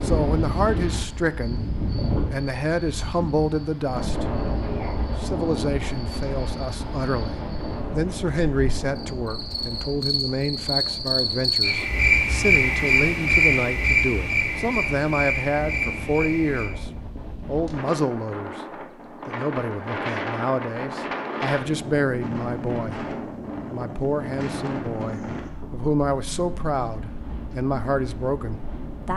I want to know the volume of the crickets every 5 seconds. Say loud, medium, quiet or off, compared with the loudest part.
quiet, quiet, loud, medium, off, off.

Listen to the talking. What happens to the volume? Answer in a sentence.
The volume of the talking stays about the same.